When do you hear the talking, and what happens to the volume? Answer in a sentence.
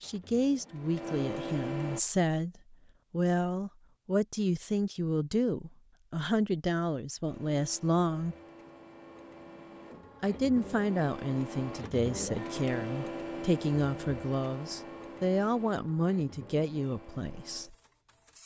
The talking can be heard from 0.0 to 8.3 s, at a steady volume; and from 10.2 to 17.8 s, at a steady volume.